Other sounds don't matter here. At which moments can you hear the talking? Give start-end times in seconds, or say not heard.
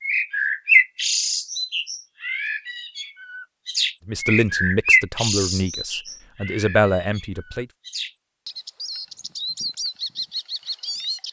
4.0-7.7.